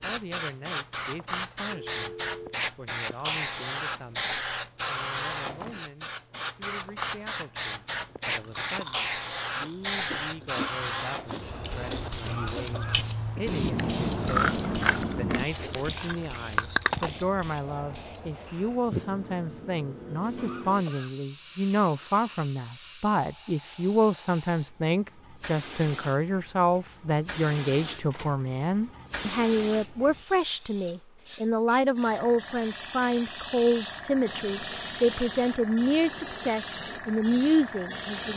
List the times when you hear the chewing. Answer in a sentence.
You can hear the chewing from 8.3 to 17.1 s.